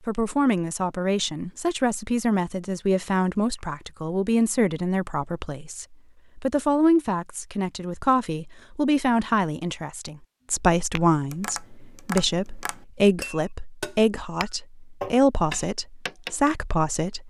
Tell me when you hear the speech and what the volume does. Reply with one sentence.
You can hear the speech from 0.1 to 17.2 s, at a steady volume.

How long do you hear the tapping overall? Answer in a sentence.
You can hear the tapping for 6 seconds altogether.